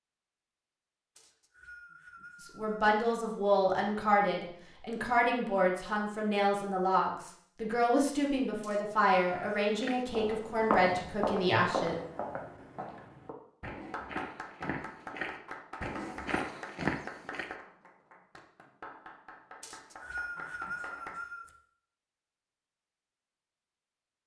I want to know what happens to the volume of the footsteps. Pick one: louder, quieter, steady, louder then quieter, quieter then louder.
quieter then louder.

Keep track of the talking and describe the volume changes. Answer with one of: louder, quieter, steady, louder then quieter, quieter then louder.
steady.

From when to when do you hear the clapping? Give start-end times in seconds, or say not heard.
13.9-21.2.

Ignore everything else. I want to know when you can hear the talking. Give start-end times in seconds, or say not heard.
2.4-11.9.